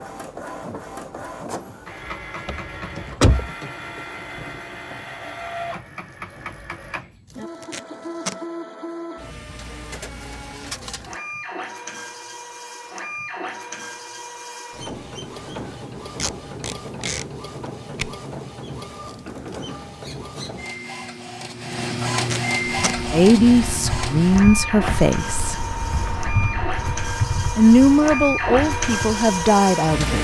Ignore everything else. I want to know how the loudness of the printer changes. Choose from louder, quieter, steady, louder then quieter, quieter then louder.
louder.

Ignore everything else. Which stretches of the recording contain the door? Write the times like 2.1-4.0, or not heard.
2.5-3.5.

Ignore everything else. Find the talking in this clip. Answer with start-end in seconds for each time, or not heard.
23.1-25.6, 27.6-30.1.